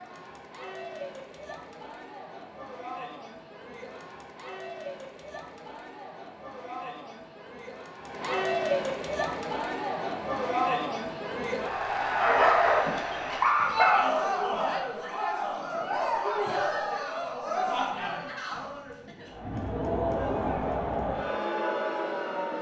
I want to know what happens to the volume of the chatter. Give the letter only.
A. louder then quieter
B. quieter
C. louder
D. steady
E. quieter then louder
C.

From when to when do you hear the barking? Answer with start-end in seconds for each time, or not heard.
12.2-14.1.